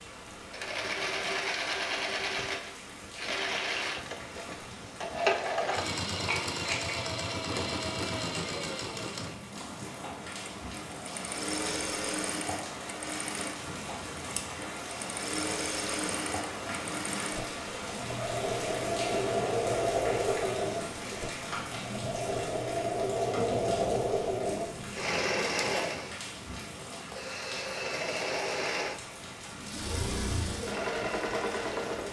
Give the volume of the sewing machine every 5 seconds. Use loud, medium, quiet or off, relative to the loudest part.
loud, loud, medium, loud, loud, loud, loud.